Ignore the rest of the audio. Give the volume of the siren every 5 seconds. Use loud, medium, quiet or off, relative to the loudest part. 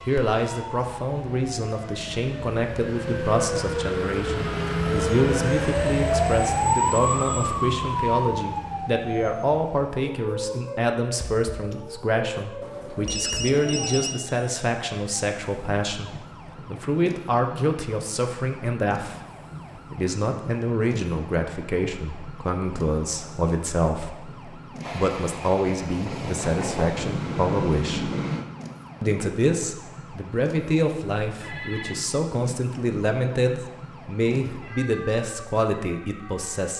medium, loud, quiet, quiet, quiet, quiet, quiet, quiet.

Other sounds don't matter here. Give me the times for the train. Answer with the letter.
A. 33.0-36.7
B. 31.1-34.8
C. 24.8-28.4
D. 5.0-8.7
C.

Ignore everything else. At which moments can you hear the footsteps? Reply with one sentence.
You can't hear the footsteps here.